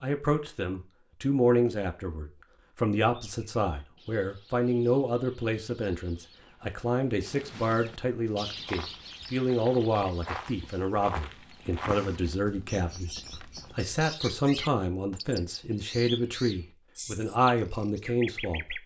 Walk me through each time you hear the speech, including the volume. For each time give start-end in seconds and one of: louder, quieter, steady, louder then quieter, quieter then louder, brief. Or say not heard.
0.0-18.8 steady.